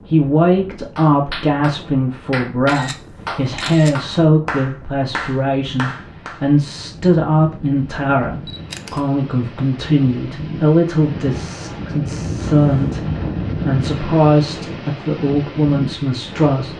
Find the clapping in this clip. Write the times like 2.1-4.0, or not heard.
0.9-6.4.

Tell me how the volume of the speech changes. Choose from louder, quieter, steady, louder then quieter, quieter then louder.
steady.